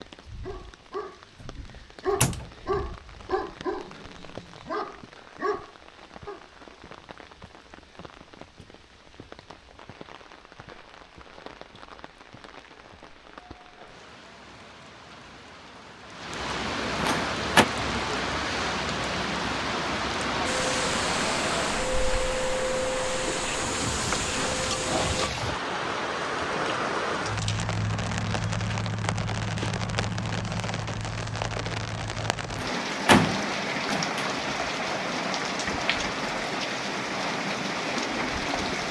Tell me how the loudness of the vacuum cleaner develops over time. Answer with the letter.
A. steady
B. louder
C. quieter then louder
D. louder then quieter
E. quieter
A.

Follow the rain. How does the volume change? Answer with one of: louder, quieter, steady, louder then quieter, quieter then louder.
louder.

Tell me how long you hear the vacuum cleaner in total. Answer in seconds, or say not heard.
5 s.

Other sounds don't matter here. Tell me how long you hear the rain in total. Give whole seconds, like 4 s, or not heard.
39 s.